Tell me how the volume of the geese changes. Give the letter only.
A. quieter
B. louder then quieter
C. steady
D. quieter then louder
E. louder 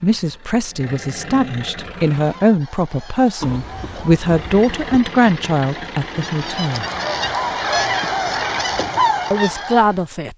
E.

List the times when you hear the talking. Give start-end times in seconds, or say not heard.
0.0-6.8, 9.3-10.3.